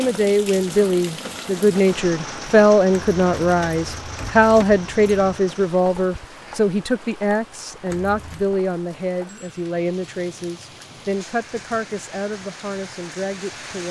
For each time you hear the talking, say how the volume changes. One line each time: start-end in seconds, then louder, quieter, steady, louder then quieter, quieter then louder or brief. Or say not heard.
0.0-13.8 quieter.